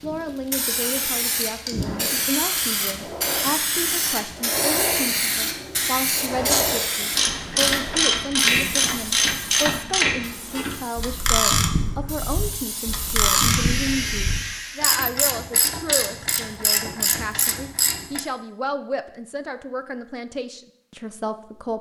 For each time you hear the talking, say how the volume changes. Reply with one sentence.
The talking can be heard from 0.0 to 21.7 s, at a steady volume.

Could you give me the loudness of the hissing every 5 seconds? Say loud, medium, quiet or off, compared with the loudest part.
loud, loud, medium, off, off.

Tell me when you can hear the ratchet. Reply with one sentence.
You can hear the ratchet from 6.5 to 18.2 s.